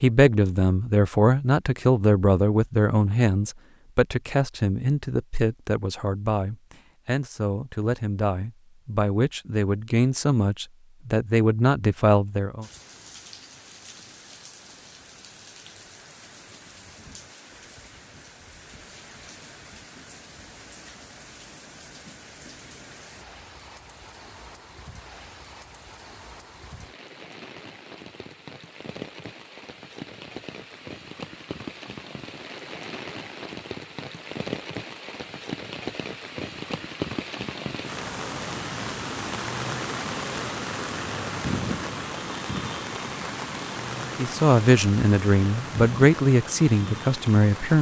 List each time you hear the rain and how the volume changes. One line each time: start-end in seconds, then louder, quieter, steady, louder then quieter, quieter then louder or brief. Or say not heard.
12.6-47.7 louder.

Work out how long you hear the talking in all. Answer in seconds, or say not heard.
16 s.